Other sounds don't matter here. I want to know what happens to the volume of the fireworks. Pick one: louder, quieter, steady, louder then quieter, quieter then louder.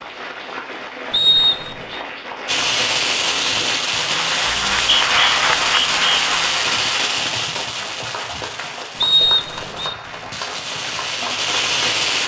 quieter then louder.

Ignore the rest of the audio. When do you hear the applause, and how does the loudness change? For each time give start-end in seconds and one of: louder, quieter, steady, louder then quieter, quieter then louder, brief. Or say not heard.
0.0-12.2 louder then quieter.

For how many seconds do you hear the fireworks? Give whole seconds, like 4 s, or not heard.
10 s.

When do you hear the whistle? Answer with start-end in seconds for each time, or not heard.
1.1-2.0, 4.5-6.2, 9.0-9.9.